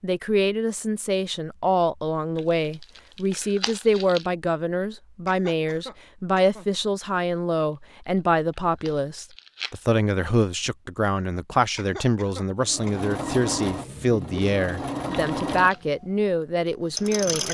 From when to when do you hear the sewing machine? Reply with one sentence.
You can hear the sewing machine from 12.6 to 17.4 s.